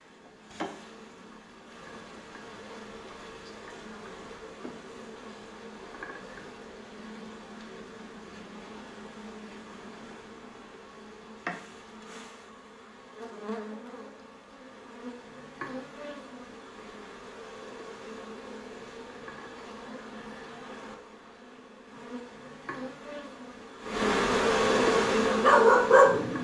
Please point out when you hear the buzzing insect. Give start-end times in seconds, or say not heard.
0.0-26.3.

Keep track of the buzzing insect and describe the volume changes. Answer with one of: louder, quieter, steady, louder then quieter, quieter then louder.
louder.